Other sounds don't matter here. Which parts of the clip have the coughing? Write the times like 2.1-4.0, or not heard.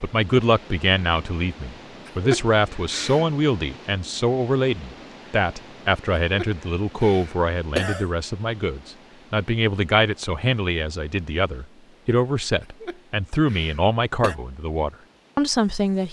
2.0-3.3, 6.3-8.1, 12.8-14.3.